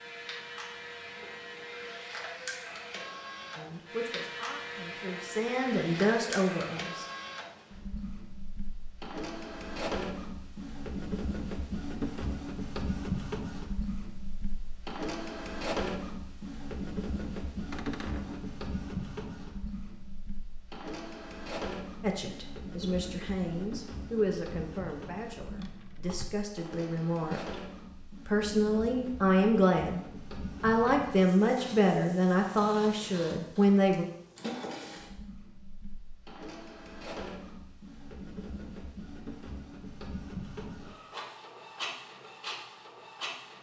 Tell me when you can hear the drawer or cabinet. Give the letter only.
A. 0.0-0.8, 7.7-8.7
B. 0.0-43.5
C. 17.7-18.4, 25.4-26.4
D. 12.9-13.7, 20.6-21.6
C.